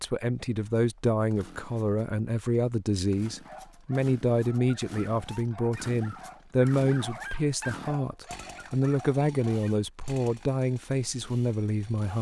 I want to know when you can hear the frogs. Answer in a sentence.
The frogs can't be heard in this clip.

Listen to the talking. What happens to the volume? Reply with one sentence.
The loudness of the talking stays about the same.